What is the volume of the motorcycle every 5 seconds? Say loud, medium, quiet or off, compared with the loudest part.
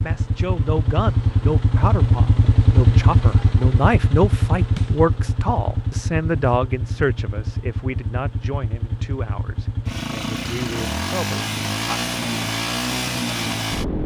loud, medium, loud.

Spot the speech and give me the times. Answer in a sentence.
You can hear the speech from 0.0 to 12.0 s.